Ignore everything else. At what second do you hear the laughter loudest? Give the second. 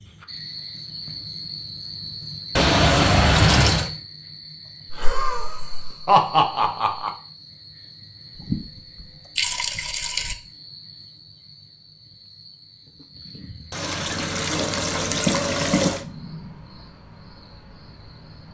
6 s.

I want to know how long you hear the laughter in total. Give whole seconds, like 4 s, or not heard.
2 s.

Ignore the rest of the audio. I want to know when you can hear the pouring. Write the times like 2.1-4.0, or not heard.
2.5-3.9, 8.3-10.3, 13.7-16.1.